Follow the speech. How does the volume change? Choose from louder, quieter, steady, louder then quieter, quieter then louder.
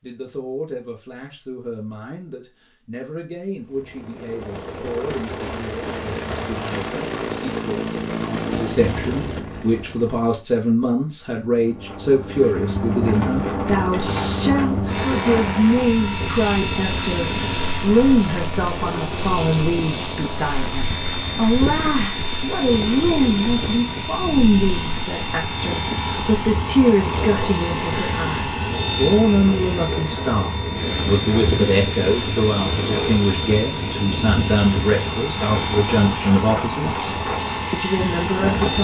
louder.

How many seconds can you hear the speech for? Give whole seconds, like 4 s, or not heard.
39 s.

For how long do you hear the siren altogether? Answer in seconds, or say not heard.
not heard.